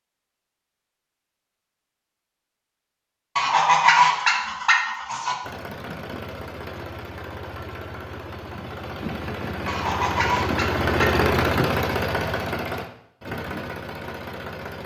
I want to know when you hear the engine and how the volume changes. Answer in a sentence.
You can hear the engine from 5.4 to 14.8 s, getting louder then quieter.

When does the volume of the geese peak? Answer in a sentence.
The volume of the geese peaks at 4 seconds.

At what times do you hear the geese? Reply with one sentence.
You can hear the geese from 3.4 to 5.3 s and from 9.7 to 11.2 s.